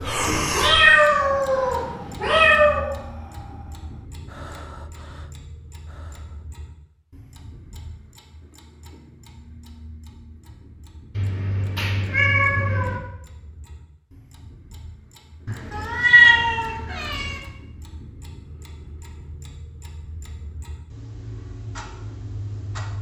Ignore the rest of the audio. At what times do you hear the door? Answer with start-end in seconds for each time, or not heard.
not heard.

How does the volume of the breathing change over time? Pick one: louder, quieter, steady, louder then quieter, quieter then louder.
quieter.